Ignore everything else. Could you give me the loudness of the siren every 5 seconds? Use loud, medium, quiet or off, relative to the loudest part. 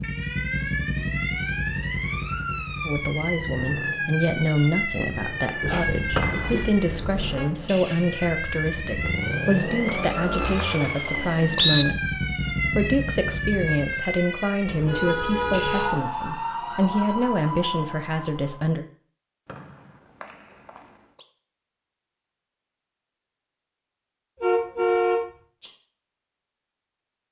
loud, loud, loud, loud, off, off.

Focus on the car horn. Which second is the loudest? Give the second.
25 s.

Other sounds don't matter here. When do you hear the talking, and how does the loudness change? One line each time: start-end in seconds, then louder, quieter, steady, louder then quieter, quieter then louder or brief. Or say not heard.
2.9-18.9 steady.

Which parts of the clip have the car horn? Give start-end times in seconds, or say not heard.
5.6-7.5, 14.7-15.9, 24.4-25.7.